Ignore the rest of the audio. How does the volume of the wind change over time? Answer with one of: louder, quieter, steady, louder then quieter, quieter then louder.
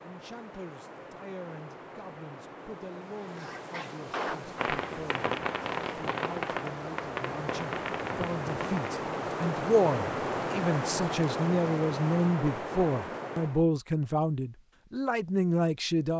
louder.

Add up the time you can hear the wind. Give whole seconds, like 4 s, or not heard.
14 s.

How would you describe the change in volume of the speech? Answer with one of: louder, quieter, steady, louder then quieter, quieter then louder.
louder.